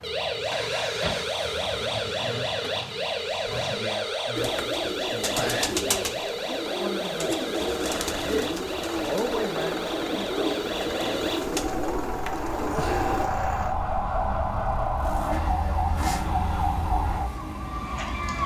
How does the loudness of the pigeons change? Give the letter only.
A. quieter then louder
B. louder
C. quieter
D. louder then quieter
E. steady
E.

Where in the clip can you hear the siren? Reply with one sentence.
You can hear the siren from 0.0 to 18.4 s.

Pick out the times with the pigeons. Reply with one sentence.
You can hear the pigeons from 4.3 to 13.3 s.